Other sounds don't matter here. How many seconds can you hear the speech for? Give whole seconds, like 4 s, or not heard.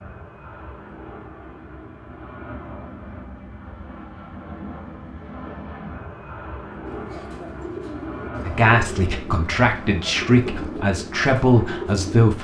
4 s.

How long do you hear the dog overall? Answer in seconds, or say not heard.
not heard.